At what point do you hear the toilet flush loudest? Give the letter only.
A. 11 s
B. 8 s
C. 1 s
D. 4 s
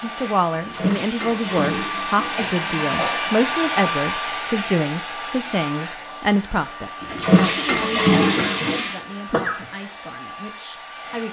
B.